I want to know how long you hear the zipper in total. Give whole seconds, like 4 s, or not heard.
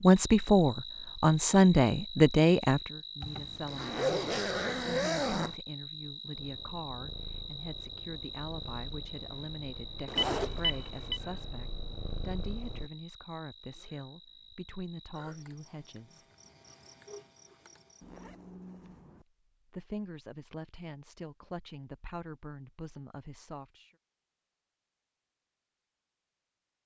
4 s.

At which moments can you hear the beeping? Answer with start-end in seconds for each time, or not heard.
10.2-11.2.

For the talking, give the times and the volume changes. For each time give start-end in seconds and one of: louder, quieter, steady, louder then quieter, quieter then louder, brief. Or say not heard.
0.0-16.2 quieter
19.1-23.9 quieter.